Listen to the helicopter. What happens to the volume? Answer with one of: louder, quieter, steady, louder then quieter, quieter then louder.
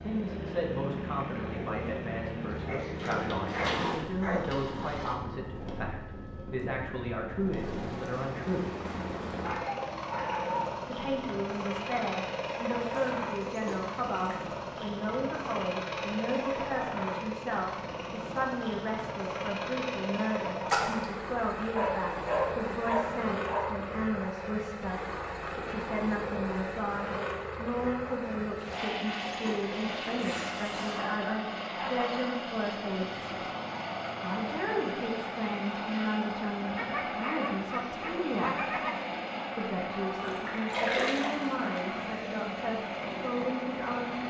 steady.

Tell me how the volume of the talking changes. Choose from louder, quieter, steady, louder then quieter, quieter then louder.
steady.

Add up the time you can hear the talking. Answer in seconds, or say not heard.
40 s.